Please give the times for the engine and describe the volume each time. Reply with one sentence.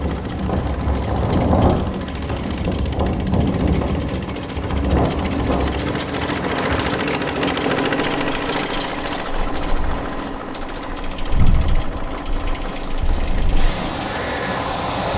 You can hear the engine from 0.0 to 15.1 s, getting louder then quieter.